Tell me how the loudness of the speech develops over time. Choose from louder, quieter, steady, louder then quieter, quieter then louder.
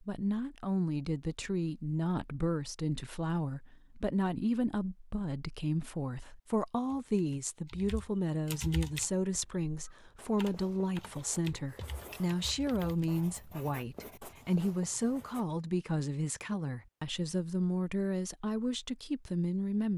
steady.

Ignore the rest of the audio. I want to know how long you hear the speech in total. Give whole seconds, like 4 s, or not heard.
20 s.